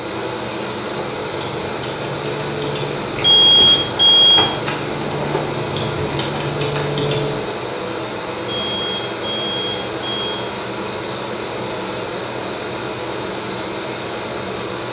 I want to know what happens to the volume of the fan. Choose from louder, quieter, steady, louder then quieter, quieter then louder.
steady.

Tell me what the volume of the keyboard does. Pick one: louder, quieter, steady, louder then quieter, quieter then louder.
louder.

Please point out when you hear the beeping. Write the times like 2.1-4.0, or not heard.
3.2-4.5, 8.5-10.3.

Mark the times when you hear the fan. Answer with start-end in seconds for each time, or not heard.
0.0-14.8.